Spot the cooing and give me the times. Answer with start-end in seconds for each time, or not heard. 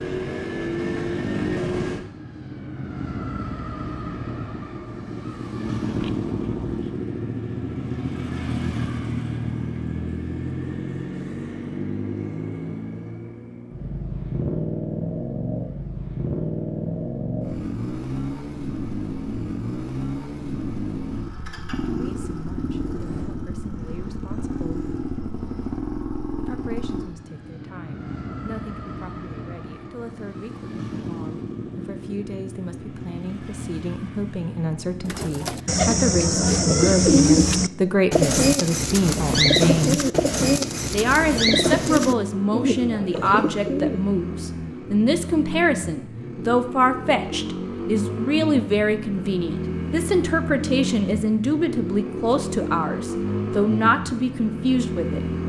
35.0-44.0.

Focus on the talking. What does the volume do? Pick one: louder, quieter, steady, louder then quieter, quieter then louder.
louder.